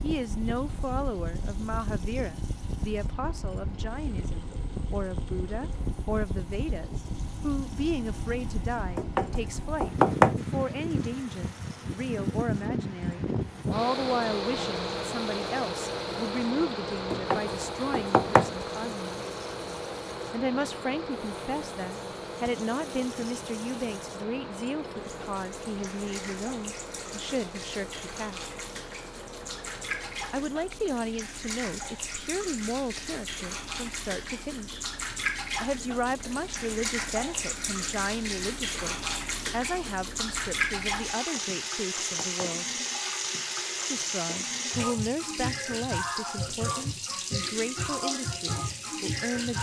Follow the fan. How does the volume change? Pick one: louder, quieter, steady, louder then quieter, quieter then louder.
louder then quieter.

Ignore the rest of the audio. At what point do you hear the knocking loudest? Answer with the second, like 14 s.
10 s.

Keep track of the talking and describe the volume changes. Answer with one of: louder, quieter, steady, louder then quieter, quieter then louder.
steady.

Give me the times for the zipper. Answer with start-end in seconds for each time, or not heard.
not heard.